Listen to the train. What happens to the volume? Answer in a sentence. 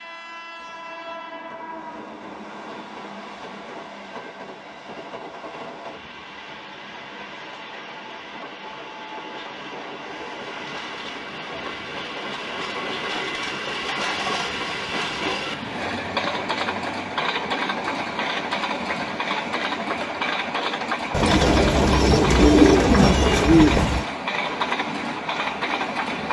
The volume of the train goes up.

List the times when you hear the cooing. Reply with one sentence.
You can hear the cooing from 21.1 to 24.1 s.